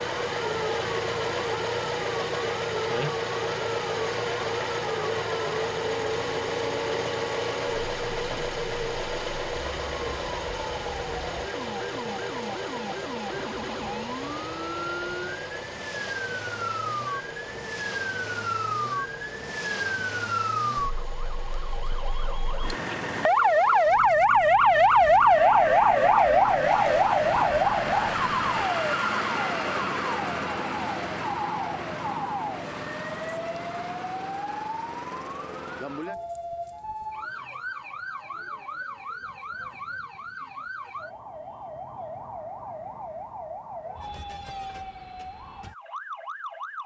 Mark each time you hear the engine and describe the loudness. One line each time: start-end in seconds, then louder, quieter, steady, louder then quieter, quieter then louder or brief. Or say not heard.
0.0-28.5 quieter.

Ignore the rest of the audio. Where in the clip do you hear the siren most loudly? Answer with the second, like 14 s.
25 s.